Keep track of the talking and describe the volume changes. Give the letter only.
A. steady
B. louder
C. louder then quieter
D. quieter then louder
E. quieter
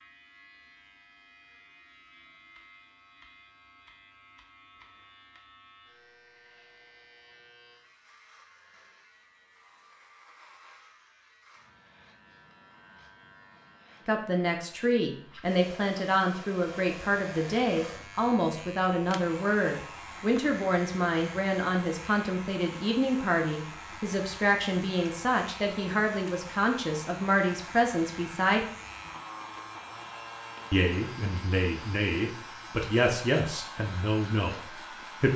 A.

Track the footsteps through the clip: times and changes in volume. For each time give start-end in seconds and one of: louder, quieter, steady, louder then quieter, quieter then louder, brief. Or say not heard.
not heard.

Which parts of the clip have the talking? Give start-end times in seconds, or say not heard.
14.1-28.6, 30.7-35.3.